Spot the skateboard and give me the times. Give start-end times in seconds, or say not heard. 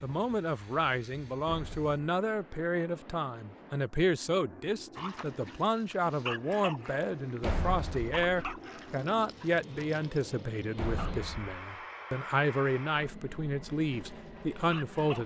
not heard.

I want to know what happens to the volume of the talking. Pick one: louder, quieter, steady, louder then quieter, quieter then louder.
steady.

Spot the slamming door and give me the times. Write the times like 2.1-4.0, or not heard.
1.4-1.9, 7.4-8.6, 10.8-11.6.